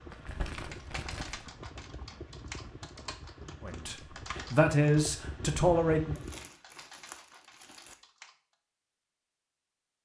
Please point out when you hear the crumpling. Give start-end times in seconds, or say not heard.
0.1-1.5, 6.2-8.0.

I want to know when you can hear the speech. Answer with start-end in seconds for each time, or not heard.
3.6-6.2.